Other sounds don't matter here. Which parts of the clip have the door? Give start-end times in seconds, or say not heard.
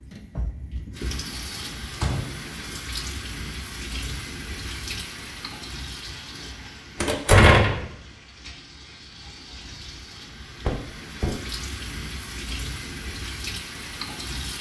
1.9-2.4, 7.0-7.8, 10.7-11.4.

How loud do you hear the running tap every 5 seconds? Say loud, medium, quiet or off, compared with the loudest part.
loud, medium, loud.